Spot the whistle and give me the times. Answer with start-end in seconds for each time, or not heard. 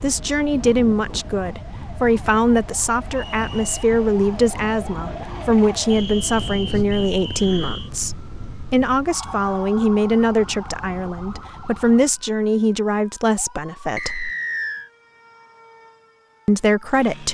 3.1-3.6, 5.9-7.9, 13.9-14.9.